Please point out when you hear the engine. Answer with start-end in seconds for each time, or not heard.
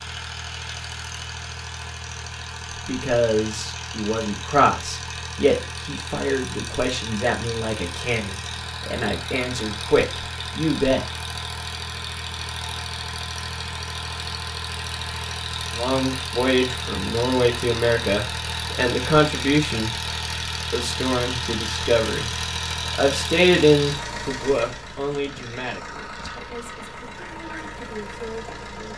0.0-28.9.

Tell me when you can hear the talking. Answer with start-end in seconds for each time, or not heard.
2.6-11.1, 15.8-19.9, 20.7-28.9.